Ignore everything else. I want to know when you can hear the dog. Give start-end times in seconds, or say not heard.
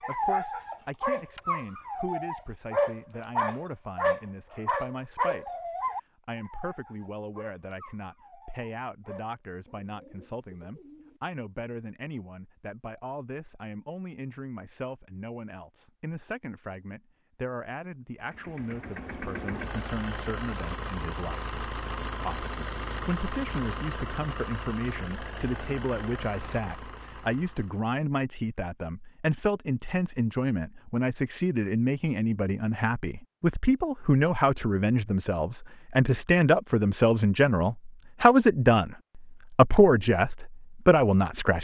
0.0-9.3.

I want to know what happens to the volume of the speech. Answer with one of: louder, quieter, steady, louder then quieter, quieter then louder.
louder.